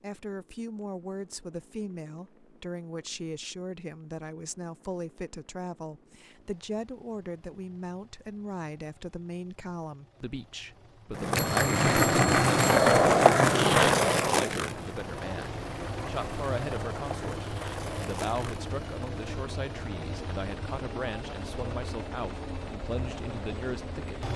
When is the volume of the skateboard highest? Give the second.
13 s.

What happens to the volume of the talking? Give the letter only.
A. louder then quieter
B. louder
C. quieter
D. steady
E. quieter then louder
D.